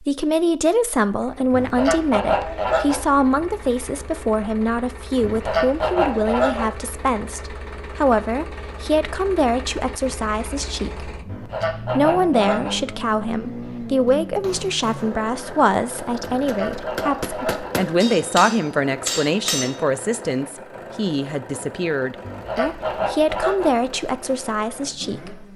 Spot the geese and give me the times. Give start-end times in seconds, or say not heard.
1.5-3.0, 5.2-6.8, 11.2-12.8, 16.3-17.8, 22.2-23.8.